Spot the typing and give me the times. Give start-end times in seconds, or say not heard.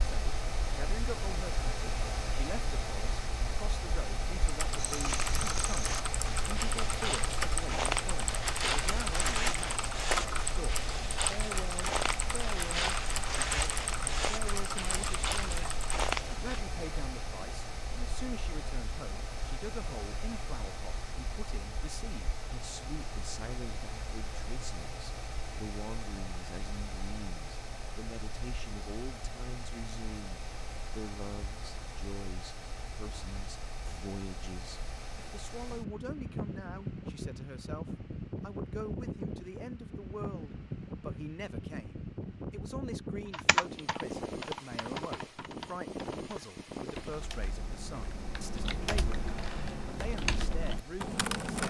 4.5-15.9, 43.3-51.6.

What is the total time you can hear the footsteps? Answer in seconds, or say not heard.
12 s.